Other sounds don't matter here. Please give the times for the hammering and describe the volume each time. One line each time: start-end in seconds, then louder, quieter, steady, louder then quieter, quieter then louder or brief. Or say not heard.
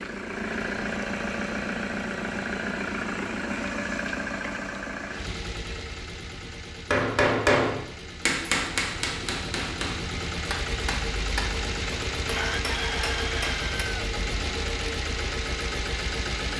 6.9-13.8 quieter.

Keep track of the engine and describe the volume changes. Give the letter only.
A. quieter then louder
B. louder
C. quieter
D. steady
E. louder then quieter
A.